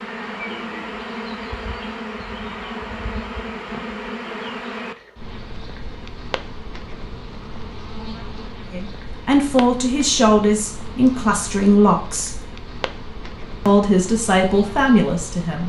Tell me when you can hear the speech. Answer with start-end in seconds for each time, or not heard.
8.7-12.4, 13.7-15.6.